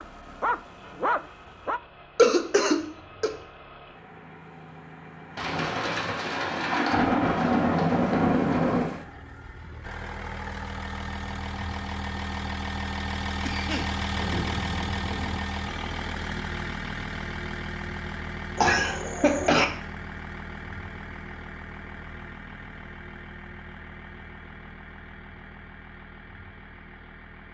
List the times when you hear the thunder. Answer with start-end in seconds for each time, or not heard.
5.3-9.0, 14.1-15.4.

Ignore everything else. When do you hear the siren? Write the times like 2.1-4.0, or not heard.
not heard.